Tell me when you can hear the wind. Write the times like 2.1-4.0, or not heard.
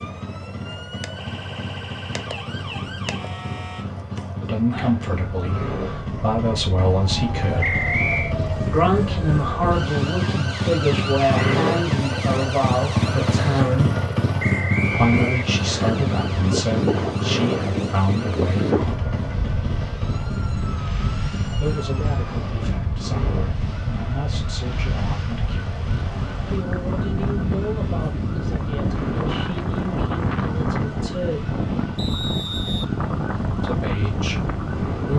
14.9-35.1.